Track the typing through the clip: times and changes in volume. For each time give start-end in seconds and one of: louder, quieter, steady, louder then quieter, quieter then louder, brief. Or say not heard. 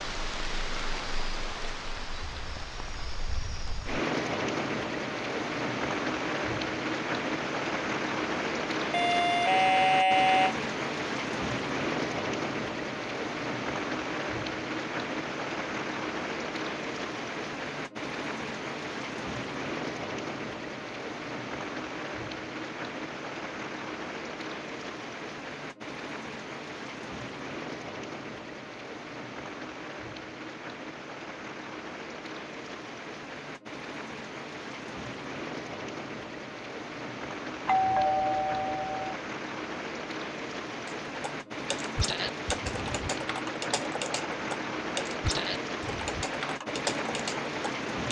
40.9-48.0 steady.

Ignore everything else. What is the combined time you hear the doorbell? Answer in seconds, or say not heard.
3 s.